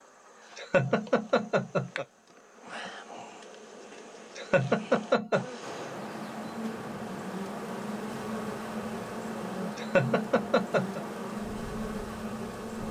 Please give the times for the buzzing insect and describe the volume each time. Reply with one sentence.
You can hear the buzzing insect from 0.0 to 12.8 s, getting louder.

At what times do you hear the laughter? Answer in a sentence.
The laughter can be heard from 0.6 to 2.0 s, from 4.3 to 5.5 s and from 9.8 to 11.0 s.